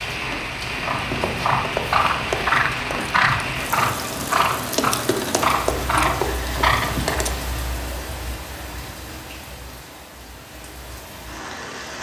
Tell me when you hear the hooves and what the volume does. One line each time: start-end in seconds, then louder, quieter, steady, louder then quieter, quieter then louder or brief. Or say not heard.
0.8-7.3 steady.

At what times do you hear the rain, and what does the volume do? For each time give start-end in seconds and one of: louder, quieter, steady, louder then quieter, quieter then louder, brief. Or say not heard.
0.0-11.9 quieter.